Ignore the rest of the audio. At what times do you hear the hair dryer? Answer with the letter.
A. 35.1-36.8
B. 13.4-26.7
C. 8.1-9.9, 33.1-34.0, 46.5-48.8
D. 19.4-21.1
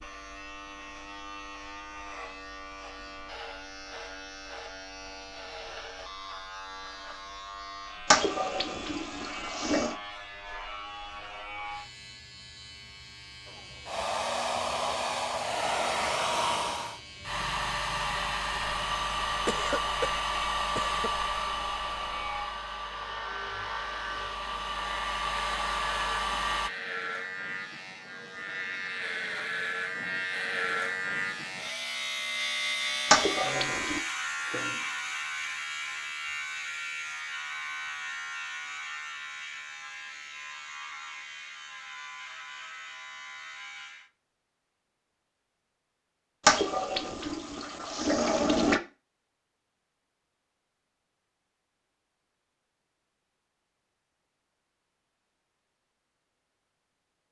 B.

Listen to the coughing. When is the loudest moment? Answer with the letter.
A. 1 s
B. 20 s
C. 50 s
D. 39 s
B.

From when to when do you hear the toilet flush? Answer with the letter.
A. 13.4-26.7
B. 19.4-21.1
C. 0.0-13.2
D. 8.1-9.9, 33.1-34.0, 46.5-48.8
D.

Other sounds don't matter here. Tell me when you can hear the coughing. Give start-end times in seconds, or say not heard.
19.4-21.1.